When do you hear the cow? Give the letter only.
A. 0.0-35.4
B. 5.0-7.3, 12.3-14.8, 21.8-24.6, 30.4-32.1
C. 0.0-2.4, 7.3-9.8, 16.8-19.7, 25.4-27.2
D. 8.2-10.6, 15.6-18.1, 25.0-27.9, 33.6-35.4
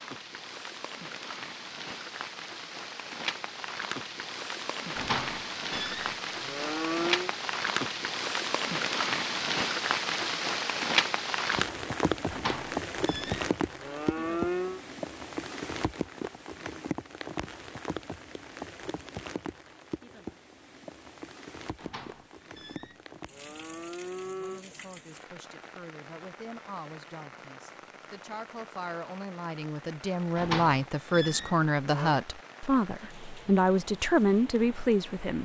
B.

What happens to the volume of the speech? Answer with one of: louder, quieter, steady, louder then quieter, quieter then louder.
louder.